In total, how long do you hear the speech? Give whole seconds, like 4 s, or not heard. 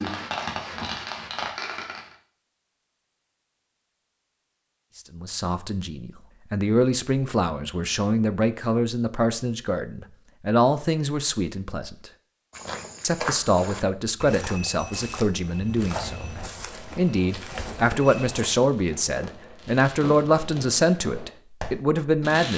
17 s.